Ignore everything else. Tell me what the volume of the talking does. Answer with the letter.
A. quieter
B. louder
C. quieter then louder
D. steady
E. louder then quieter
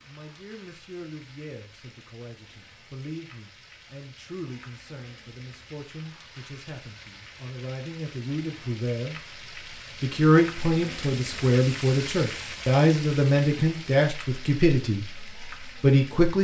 B.